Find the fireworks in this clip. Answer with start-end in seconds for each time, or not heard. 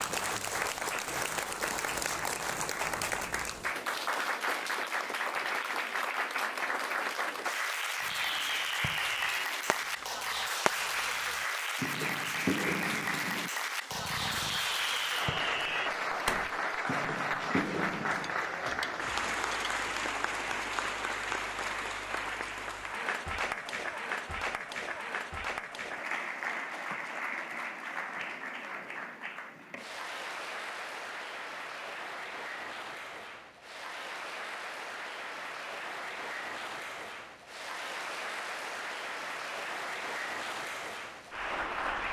8.0-18.4.